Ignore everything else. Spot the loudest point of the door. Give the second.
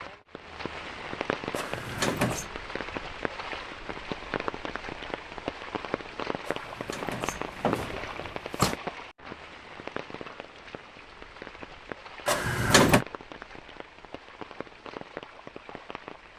13 s.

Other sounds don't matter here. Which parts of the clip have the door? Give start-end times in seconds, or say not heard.
1.5-2.5, 6.5-8.8, 12.2-13.1.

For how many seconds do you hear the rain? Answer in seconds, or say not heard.
16 s.